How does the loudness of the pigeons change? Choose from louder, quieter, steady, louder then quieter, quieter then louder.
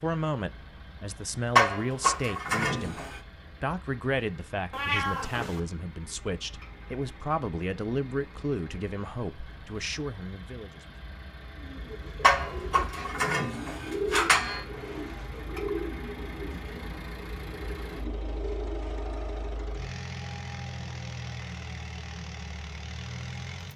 louder then quieter.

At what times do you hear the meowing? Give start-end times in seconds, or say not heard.
4.7-5.6.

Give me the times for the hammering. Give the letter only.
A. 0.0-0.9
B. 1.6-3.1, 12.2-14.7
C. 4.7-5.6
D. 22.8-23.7
B.